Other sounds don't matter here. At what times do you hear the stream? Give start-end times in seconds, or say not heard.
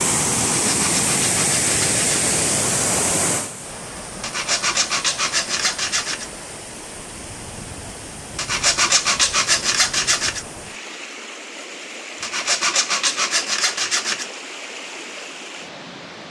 0.0-16.2.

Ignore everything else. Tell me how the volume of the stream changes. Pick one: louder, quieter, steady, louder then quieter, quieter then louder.
quieter.